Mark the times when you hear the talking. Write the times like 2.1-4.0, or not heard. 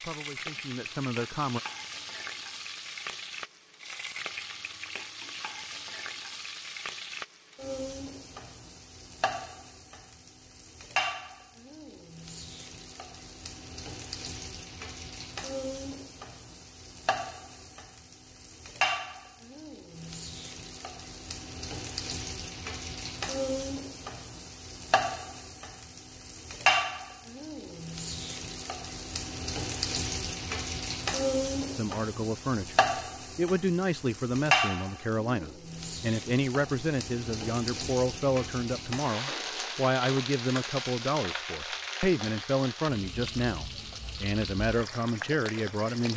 0.0-1.6, 31.7-46.1.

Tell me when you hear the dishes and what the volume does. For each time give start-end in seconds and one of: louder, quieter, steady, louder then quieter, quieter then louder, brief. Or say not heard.
not heard.